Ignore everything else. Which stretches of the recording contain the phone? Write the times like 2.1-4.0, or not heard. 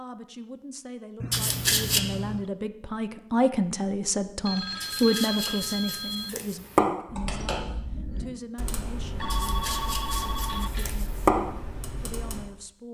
1.2-2.5, 4.5-6.3, 9.2-10.7.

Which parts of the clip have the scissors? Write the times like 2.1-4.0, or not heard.
1.3-2.0, 4.8-6.8, 9.3-11.3.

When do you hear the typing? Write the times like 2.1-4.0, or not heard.
7.0-12.4.